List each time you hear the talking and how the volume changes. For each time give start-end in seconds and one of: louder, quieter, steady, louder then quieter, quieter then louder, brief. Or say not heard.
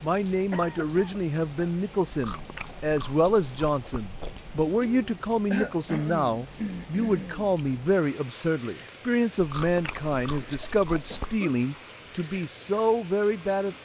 0.0-13.7 steady.